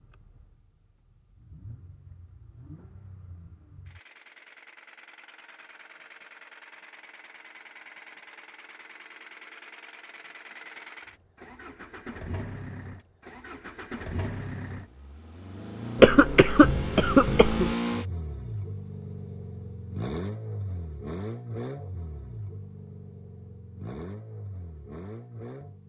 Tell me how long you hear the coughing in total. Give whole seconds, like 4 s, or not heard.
2 s.